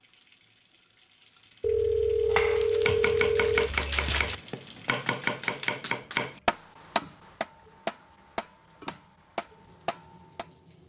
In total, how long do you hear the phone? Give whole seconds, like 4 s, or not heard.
3 s.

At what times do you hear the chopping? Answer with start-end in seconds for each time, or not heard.
2.2-10.4.